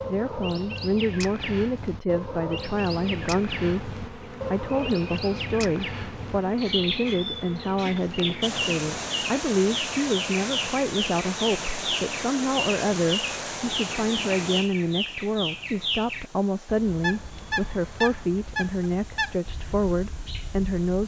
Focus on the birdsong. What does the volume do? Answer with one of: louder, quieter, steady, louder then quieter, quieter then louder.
steady.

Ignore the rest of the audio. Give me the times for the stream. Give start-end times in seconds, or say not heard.
8.4-21.0.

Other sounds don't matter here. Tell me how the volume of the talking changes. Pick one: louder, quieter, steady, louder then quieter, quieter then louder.
steady.